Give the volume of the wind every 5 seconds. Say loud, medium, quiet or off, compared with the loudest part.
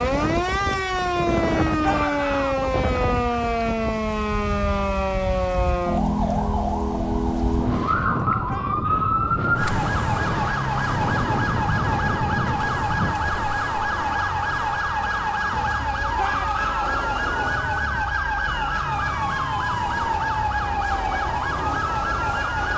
loud, loud, loud, off, off.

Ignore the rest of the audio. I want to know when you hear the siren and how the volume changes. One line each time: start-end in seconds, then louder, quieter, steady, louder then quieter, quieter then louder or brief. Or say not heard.
0.0-22.7 steady.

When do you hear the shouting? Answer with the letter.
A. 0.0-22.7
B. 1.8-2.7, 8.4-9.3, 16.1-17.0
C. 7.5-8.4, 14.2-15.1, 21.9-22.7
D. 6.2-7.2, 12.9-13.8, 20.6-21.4
B.